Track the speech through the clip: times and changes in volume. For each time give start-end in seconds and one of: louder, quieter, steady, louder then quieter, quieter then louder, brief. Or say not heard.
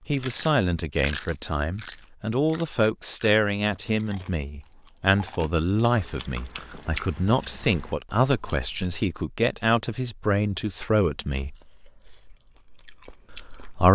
0.1-11.6 steady
13.3-13.9 brief.